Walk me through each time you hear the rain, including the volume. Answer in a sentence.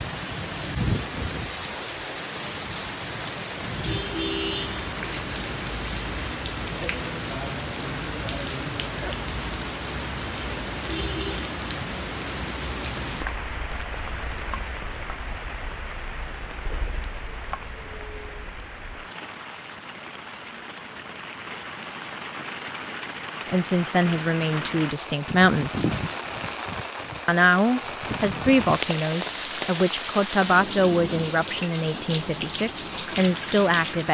The rain can be heard from 0.0 to 34.0 s, getting quieter then louder.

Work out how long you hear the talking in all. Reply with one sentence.
You can hear the talking for 9 seconds altogether.